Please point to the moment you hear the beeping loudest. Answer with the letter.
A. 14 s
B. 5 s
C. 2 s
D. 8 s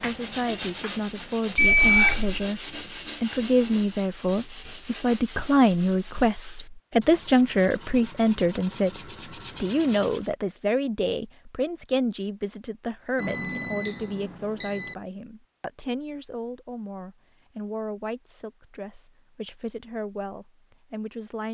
C.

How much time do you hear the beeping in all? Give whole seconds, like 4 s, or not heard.
3 s.